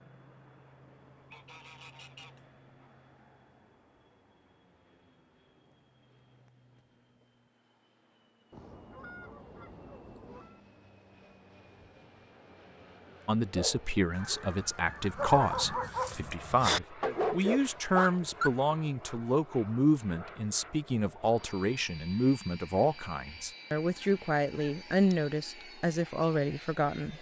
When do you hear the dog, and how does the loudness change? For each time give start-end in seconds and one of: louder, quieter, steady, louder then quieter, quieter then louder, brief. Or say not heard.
13.2-18.5 louder.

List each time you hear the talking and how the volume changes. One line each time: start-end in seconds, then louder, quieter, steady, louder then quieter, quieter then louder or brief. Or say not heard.
13.2-27.1 steady.